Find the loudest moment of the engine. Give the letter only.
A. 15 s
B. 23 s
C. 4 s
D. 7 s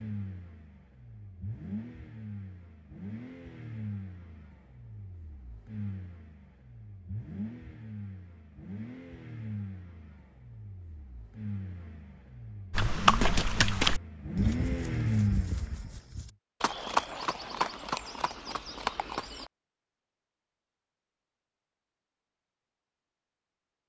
A.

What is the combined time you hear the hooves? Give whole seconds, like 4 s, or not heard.
7 s.